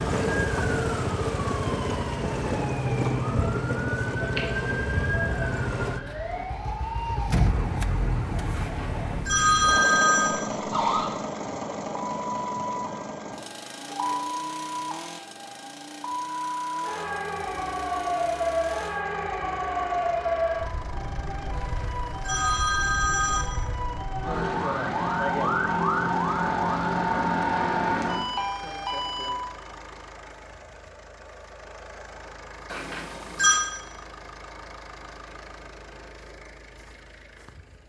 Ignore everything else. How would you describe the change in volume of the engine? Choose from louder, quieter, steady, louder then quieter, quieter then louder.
quieter.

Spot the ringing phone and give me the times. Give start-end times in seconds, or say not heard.
8.6-10.4, 21.6-23.4, 32.7-33.6.